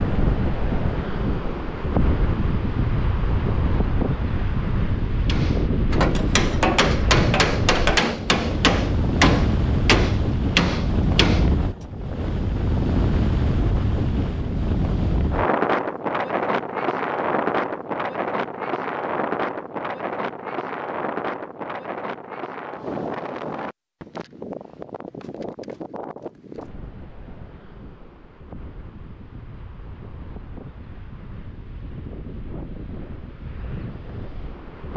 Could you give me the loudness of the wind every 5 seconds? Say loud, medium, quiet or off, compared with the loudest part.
loud, loud, loud, loud, medium, quiet, quiet.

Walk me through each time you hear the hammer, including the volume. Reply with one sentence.
The hammer can be heard from 5.2 to 11.6 s, at a steady volume.